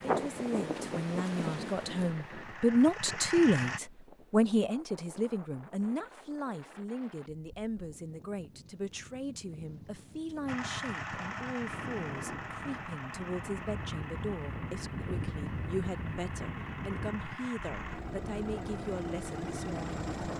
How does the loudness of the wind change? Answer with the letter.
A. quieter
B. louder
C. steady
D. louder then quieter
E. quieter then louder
E.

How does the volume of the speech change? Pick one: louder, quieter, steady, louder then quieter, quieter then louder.
quieter.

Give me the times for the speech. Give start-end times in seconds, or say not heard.
0.0-20.3.